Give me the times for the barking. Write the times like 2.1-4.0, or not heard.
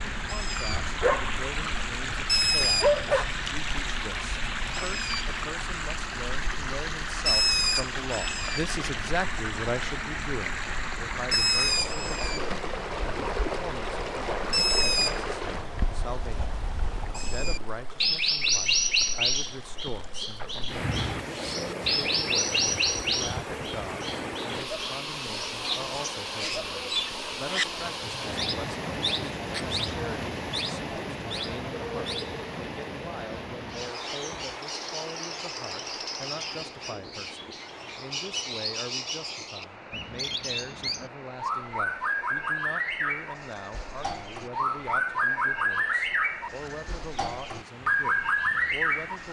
0.7-1.3, 2.1-3.3.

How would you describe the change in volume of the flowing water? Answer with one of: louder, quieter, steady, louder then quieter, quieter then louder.
quieter.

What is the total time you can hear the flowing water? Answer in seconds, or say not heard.
49 s.